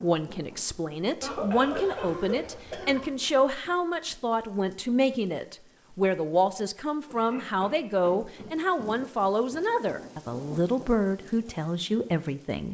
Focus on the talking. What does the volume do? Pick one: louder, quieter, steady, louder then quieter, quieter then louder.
steady.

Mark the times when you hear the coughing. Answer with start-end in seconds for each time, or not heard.
1.2-3.1, 7.0-8.9.